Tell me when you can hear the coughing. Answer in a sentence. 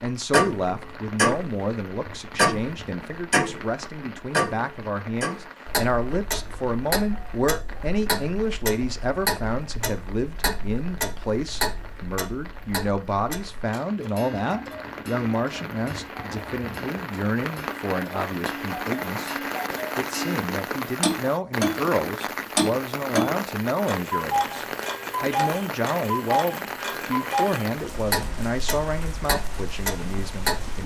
You can't hear the coughing here.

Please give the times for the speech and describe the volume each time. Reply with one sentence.
The speech can be heard from 0.0 to 19.4 s, at a steady volume; and from 19.9 to 30.8 s, at a steady volume.